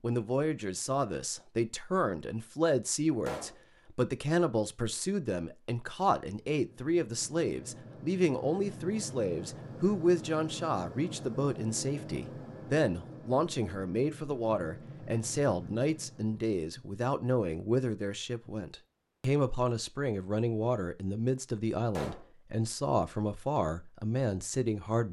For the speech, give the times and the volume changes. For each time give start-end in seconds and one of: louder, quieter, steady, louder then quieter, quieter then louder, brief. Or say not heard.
0.0-25.0 steady.